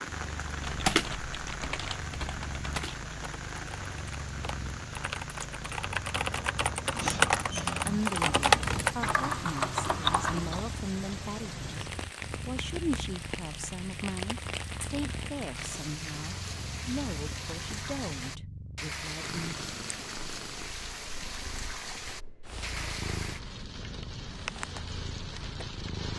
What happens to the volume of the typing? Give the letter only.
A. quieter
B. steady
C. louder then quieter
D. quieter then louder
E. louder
D.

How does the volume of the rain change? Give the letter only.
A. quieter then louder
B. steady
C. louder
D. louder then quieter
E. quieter
B.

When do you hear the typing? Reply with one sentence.
You can hear the typing from 0.6 to 10.6 s.